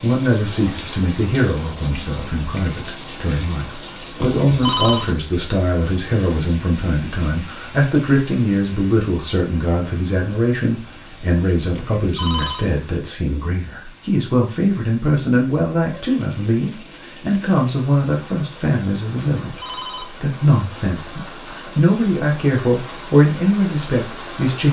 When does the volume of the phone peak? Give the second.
5 s.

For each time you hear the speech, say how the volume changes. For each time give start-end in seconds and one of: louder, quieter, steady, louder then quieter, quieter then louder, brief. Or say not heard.
0.0-24.6 steady.